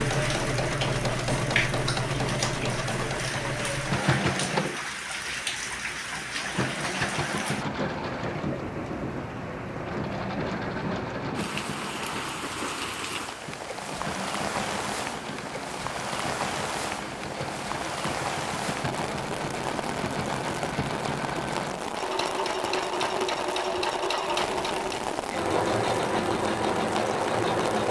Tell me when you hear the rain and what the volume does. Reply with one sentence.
You can hear the rain from 0.0 to 27.8 s, at a steady volume.